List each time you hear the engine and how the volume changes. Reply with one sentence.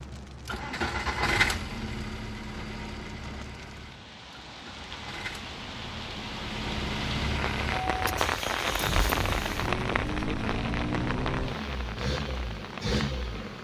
You can hear the engine from 0.0 to 13.6 s, getting quieter then louder.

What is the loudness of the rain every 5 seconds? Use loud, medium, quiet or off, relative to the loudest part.
quiet, loud, medium.